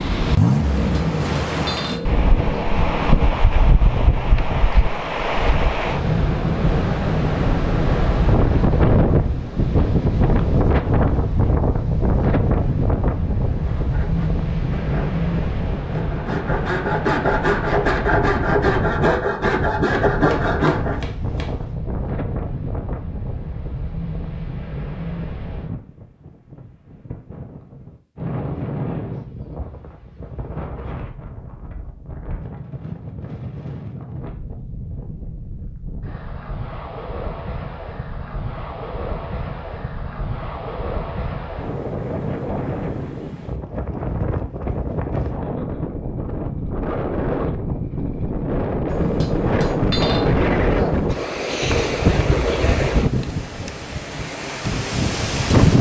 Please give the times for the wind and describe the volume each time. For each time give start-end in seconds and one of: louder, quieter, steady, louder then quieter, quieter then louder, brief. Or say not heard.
0.0-55.7 quieter then louder.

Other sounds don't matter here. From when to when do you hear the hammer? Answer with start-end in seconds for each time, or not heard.
0.6-3.3, 19.9-21.8, 48.9-51.1.